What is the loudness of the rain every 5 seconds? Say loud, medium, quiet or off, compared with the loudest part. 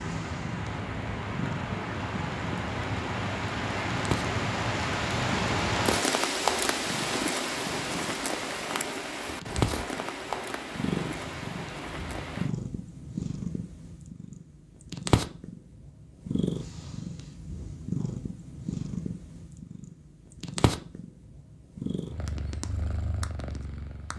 loud, loud, medium, off, off.